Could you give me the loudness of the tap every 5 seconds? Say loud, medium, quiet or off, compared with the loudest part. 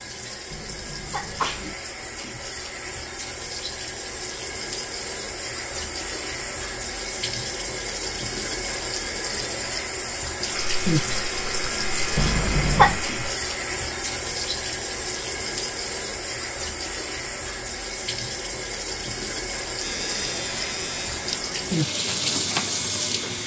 medium, loud, loud, loud, loud.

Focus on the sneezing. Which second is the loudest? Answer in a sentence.
The loudest moment of the sneezing is at 13 seconds.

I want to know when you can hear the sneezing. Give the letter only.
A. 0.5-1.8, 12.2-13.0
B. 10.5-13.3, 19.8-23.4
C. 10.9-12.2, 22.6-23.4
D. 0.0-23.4
A.